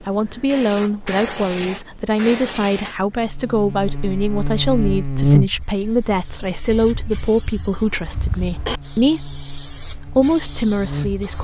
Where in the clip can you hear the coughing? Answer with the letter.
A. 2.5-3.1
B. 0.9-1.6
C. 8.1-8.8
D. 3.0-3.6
C.